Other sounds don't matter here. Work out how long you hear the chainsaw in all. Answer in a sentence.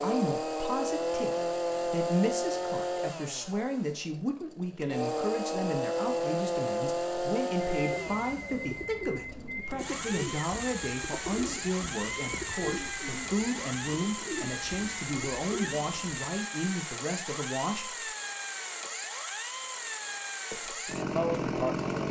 You can hear the chainsaw for 22 seconds altogether.